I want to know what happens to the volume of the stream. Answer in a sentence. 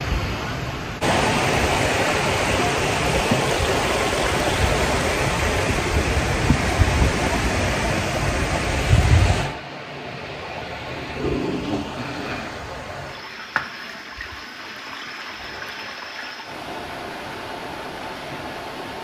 The loudness of the stream goes down.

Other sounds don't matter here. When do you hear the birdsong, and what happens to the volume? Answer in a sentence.
You can't hear the birdsong here.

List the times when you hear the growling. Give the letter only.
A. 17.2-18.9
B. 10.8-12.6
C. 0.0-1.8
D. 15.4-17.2
B.